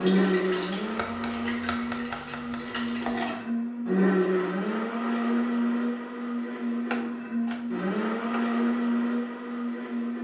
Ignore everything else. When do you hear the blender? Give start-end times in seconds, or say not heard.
0.0-10.2.